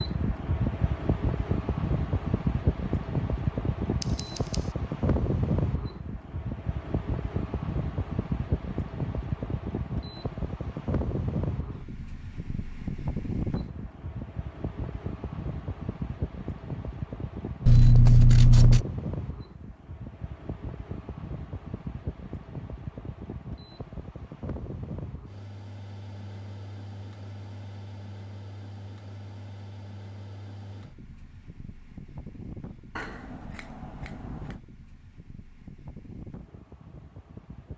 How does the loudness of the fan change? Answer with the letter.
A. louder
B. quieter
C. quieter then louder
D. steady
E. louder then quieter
B.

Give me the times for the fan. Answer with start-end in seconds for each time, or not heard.
0.0-37.7.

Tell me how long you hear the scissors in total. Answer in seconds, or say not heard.
3 s.